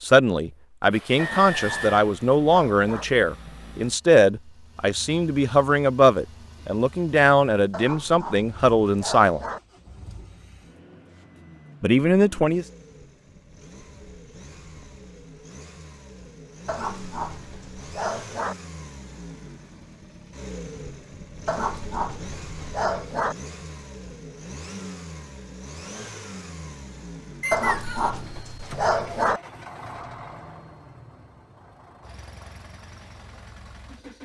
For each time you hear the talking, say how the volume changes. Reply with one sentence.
The talking can be heard from 0.0 to 9.4 s, at a steady volume; and briefly from 11.8 to 12.7 s.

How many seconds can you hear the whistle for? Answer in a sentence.
The whistle can be heard for 2 seconds in total.